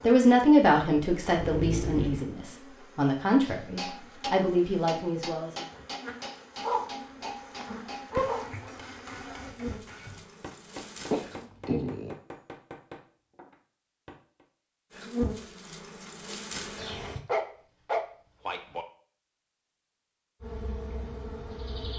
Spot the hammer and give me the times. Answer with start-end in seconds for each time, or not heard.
3.4-14.4.